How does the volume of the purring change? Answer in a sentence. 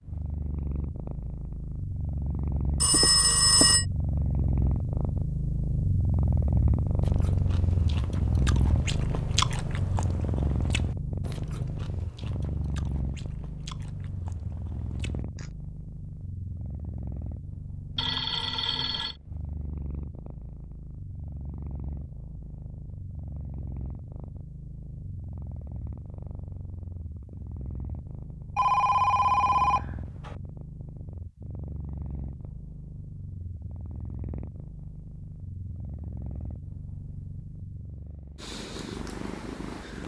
The loudness of the purring goes down.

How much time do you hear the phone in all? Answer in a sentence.
The phone can be heard for 4 seconds in total.